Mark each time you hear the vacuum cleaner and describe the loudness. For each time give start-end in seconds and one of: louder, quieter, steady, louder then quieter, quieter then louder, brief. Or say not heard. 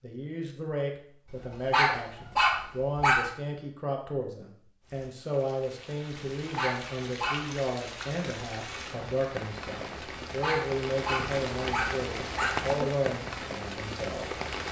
not heard.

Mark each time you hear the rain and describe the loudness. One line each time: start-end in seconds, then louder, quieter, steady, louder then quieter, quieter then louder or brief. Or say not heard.
4.8-14.6 louder.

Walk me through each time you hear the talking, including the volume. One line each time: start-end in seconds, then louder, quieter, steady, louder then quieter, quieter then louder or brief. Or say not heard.
0.0-14.2 steady.